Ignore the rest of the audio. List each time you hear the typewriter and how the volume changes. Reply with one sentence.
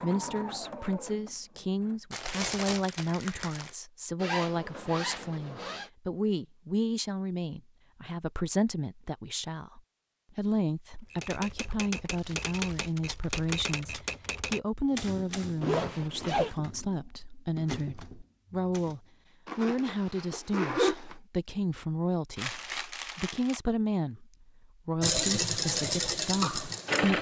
The typewriter can be heard from 11.1 to 19.0 s, getting quieter then louder.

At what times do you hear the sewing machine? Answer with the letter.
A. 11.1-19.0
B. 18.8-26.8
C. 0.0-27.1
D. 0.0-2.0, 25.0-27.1
D.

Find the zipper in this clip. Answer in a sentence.
You can hear the zipper from 4.2 to 5.9 s, from 15.6 to 16.5 s and from 19.4 to 21.1 s.